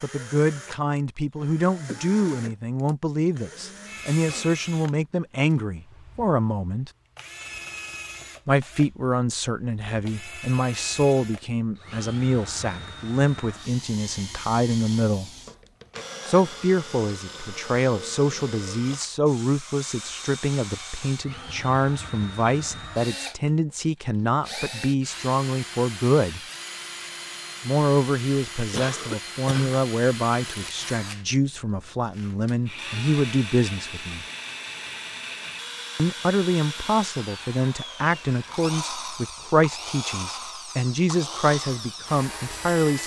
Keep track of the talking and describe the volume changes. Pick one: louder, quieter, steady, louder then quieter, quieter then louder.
steady.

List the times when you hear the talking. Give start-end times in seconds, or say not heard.
0.0-6.9, 8.4-15.3, 16.2-26.4, 27.6-34.2, 36.0-43.0.